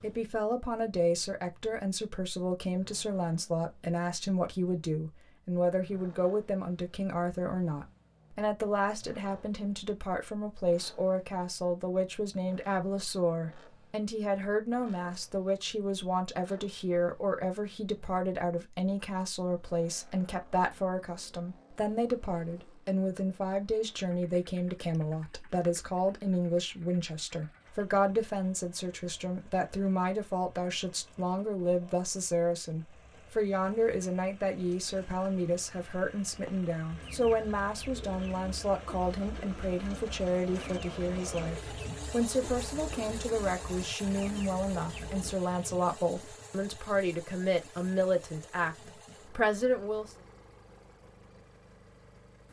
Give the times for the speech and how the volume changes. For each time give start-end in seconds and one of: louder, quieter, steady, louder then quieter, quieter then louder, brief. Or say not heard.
0.0-50.1 steady.